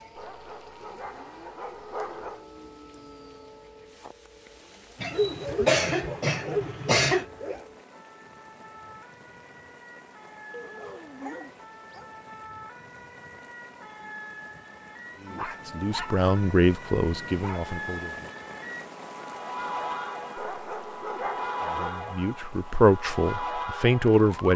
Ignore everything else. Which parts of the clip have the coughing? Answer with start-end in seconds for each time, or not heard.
5.0-7.2.